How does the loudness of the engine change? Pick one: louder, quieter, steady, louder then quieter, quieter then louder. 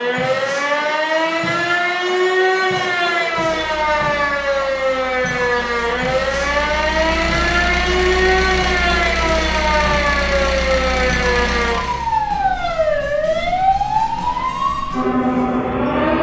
louder.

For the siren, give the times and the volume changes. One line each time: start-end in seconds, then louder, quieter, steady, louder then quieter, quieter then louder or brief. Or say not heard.
0.0-16.1 steady.